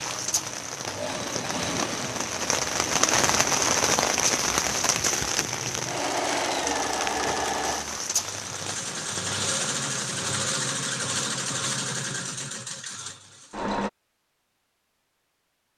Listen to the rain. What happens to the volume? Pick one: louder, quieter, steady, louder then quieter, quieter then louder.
louder then quieter.